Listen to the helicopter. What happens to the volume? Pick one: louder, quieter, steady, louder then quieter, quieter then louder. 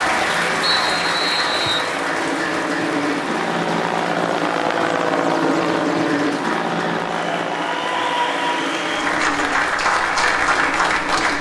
louder then quieter.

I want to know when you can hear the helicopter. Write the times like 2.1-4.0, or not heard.
0.0-11.3.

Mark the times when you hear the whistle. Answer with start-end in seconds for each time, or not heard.
0.7-1.9.